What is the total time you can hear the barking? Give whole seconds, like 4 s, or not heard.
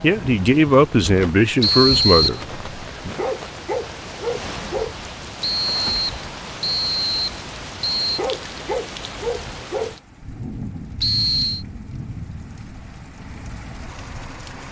4 s.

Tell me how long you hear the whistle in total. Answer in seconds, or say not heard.
4 s.